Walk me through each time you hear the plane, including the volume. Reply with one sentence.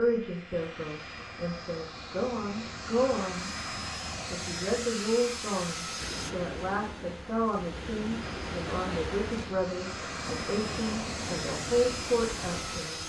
The plane can be heard from 0.0 to 6.3 s, getting louder; and from 8.2 to 13.0 s, getting louder.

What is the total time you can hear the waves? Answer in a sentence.
The waves can be heard for 7 seconds in total.